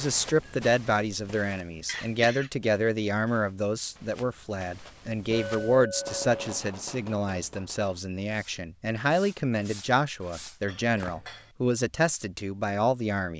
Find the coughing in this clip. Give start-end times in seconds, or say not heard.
1.9-2.5.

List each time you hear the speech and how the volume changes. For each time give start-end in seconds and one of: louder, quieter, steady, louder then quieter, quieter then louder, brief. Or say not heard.
0.0-13.3 steady.